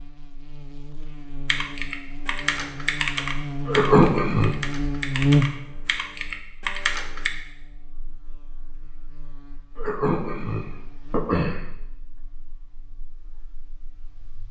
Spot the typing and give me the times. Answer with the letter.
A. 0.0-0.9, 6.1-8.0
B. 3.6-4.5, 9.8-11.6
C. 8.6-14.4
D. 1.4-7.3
D.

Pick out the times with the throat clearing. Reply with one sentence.
The throat clearing can be heard from 3.6 to 4.5 s and from 9.8 to 11.6 s.